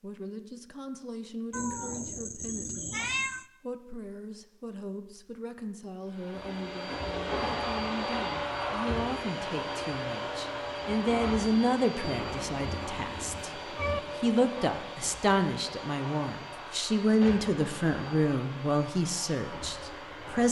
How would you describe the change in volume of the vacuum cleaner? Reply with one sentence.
The volume of the vacuum cleaner goes down.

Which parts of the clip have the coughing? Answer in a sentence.
The coughing can't be heard in this clip.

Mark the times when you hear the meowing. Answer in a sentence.
The meowing can be heard from 1.5 to 3.5 s and from 12.2 to 14.0 s.